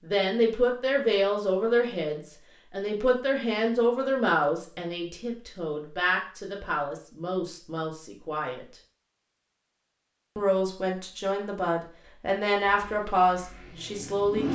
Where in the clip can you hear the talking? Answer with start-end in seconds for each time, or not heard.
0.0-8.7, 10.3-14.5.